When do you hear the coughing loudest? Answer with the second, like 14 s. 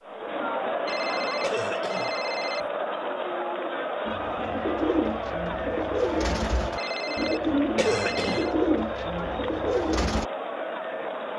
8 s.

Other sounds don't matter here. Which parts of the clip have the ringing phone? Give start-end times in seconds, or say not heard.
0.8-2.7, 6.8-8.6.